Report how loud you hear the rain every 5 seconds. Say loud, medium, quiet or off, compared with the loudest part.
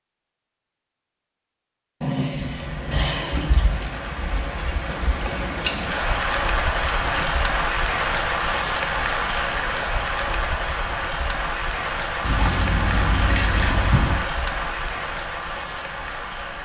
medium, loud, loud, medium.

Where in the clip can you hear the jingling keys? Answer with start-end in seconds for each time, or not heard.
2.0-4.0, 5.6-7.2, 12.2-14.2.